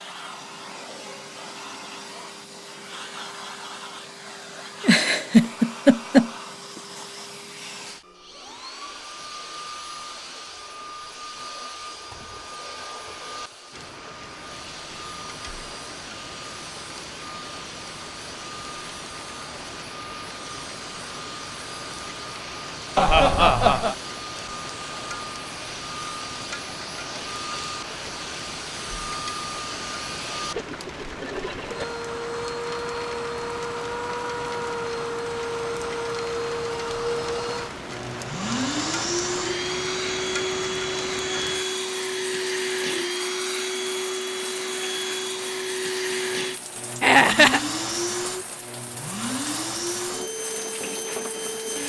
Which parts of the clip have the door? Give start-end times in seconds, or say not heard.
not heard.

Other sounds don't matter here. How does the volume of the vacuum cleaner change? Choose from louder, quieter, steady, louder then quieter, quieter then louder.
louder.